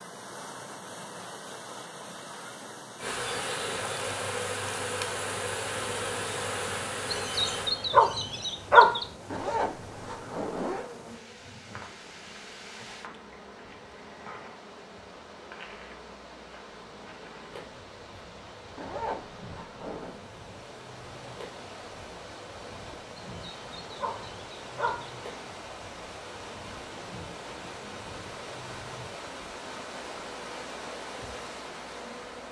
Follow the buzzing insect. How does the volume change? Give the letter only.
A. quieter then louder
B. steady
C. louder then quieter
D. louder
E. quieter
E.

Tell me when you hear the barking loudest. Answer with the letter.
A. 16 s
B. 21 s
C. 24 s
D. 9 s
D.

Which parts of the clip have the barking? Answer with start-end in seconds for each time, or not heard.
7.1-9.1, 23.4-25.1.